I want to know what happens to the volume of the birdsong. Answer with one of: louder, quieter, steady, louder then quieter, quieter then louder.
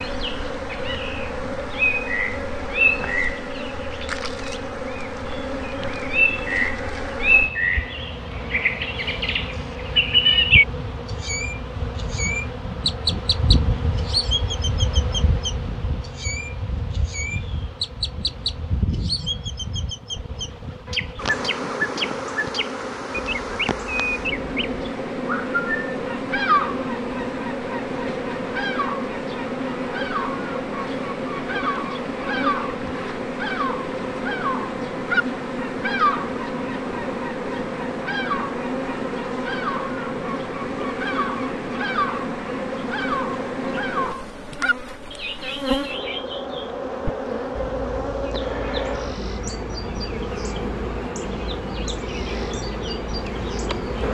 quieter.